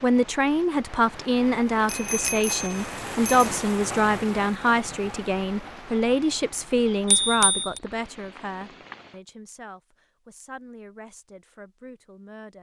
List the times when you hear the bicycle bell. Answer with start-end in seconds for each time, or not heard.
1.9-3.5, 7.0-7.8.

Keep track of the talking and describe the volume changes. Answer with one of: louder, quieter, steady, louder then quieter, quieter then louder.
quieter.